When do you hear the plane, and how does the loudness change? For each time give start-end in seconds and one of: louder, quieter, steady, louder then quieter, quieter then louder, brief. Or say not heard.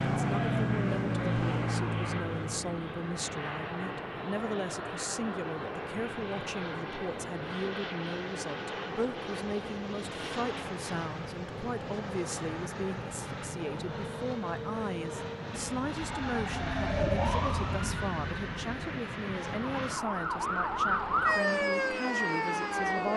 0.0-23.1 steady.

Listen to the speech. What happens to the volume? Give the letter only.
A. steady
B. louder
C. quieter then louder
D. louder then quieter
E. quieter
A.